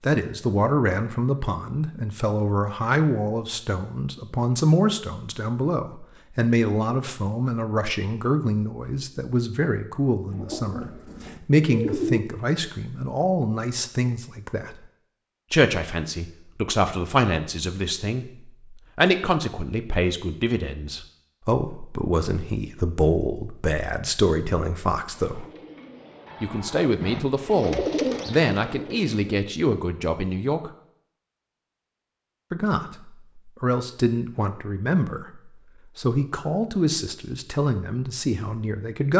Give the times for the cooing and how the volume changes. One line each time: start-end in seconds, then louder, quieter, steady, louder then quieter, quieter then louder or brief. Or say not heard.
10.3-12.2 brief
25.1-29.4 louder then quieter.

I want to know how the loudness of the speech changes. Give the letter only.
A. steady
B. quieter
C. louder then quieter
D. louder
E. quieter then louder
A.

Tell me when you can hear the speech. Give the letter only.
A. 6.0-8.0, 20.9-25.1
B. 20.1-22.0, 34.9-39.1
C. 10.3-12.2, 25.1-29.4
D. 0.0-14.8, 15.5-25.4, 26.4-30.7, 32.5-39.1
D.